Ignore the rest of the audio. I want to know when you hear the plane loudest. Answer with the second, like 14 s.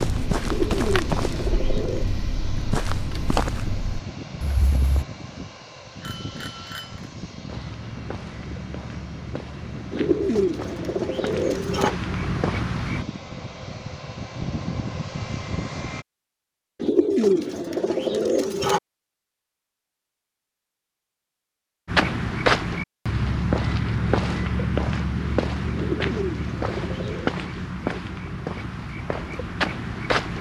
15 s.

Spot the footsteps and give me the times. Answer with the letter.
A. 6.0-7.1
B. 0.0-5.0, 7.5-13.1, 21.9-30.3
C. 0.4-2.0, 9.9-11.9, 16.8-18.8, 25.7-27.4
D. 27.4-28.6
B.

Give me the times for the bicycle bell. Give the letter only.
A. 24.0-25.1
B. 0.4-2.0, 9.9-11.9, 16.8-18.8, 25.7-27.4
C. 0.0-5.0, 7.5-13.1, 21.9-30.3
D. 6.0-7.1
D.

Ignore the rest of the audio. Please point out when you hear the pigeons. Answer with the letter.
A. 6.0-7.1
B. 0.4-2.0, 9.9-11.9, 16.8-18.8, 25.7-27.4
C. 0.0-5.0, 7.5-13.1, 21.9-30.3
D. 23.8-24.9
B.